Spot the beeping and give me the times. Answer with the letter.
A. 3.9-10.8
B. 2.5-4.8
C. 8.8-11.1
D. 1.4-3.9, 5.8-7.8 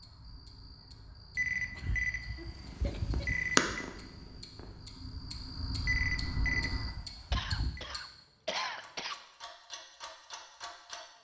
D.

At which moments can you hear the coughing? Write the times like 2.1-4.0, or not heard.
1.8-3.5, 7.3-9.2.